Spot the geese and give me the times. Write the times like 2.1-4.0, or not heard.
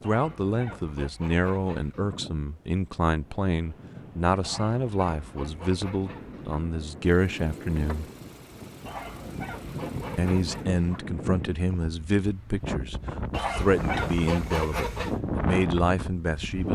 0.0-2.2, 4.4-6.7, 8.8-11.1, 13.3-15.2.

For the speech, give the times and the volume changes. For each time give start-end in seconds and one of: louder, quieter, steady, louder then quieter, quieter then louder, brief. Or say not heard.
0.0-8.1 steady
10.2-16.7 steady.